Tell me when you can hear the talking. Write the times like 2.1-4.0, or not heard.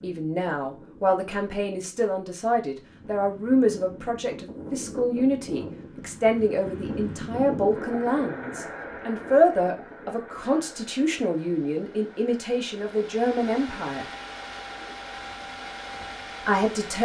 0.0-14.1, 16.4-17.0.